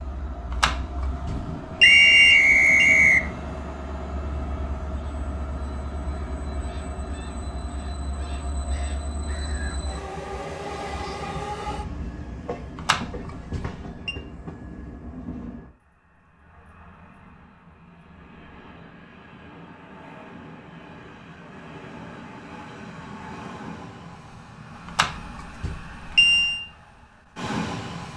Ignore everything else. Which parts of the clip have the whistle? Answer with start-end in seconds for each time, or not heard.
1.8-3.2.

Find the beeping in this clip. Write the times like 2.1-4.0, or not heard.
0.5-2.9, 12.8-14.2, 24.9-26.6.